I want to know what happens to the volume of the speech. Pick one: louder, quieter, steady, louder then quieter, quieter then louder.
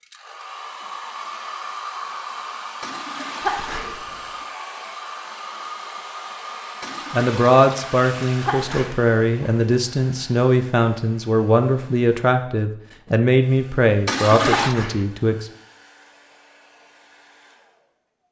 steady.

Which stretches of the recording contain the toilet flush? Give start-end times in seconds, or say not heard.
2.8-3.9, 6.8-8.8, 14.1-14.8.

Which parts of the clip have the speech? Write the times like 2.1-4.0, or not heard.
7.1-15.4.